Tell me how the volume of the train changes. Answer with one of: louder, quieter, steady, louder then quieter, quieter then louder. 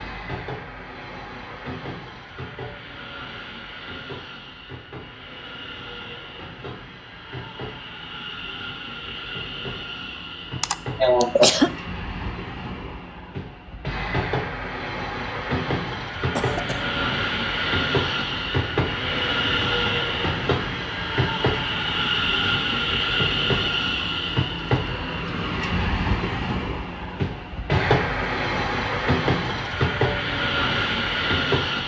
louder.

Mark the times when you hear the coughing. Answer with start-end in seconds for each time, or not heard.
10.6-11.7, 16.4-17.0.